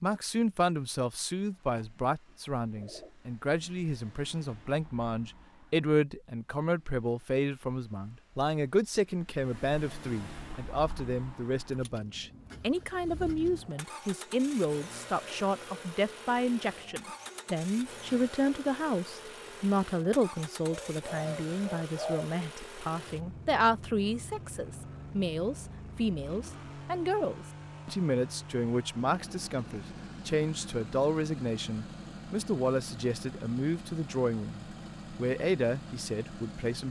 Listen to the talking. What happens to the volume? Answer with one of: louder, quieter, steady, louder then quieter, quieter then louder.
steady.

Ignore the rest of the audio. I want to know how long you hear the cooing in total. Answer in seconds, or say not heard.
3 s.